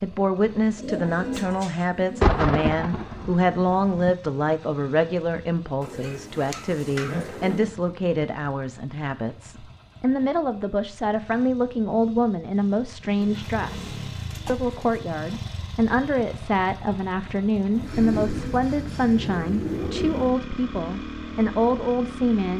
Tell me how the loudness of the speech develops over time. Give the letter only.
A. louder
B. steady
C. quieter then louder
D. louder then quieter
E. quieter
B.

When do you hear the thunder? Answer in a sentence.
The thunder can be heard from 2.2 to 4.1 s.